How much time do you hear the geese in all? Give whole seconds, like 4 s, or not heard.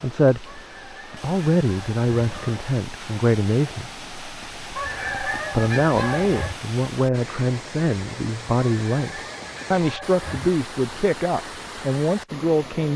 6 s.